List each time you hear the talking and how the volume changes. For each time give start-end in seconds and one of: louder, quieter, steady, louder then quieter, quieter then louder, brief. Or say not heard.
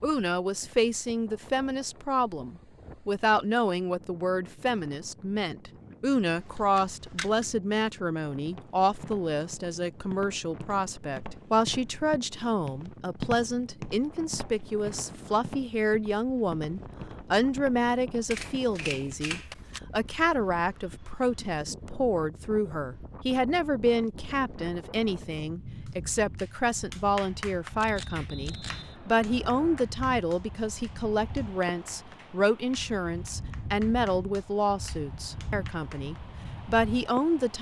0.0-37.5 steady.